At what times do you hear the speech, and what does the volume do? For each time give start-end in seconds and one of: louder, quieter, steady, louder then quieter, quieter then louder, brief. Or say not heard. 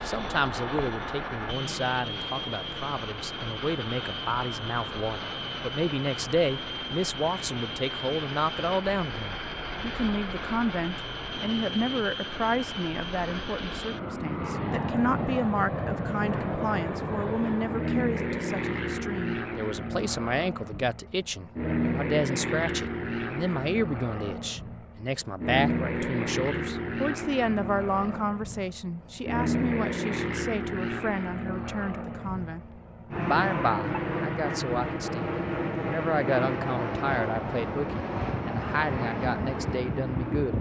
0.0-40.5 steady.